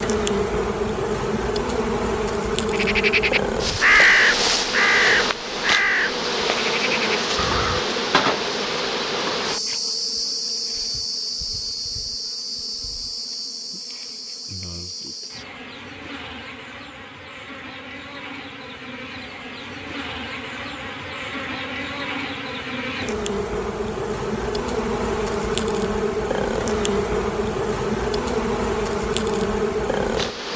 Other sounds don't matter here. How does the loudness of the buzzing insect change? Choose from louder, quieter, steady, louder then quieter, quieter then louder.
quieter then louder.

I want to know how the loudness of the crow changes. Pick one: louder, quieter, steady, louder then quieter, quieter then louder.
quieter.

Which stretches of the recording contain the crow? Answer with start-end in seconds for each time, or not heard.
2.7-7.8.